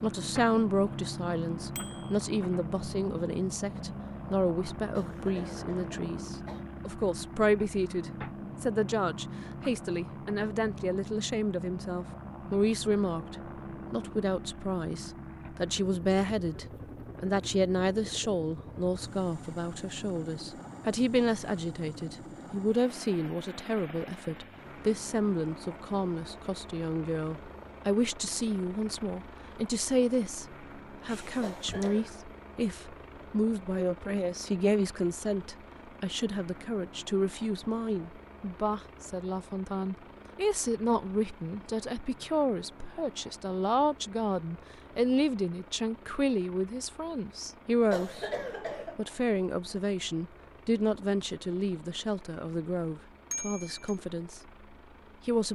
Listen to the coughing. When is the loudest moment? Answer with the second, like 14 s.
48 s.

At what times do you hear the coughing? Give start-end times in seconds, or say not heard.
5.0-6.7, 31.4-32.1, 47.9-49.0.